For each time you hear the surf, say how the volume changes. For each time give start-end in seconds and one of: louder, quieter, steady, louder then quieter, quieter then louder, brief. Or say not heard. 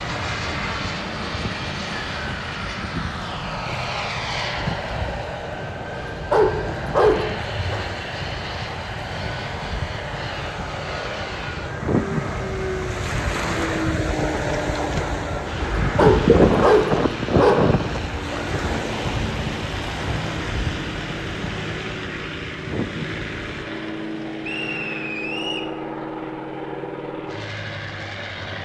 0.0-23.6 louder then quieter.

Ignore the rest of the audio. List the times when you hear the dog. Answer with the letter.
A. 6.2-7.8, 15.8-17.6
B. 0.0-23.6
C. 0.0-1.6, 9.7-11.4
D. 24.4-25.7
A.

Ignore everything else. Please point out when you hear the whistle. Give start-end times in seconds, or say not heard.
24.4-25.7.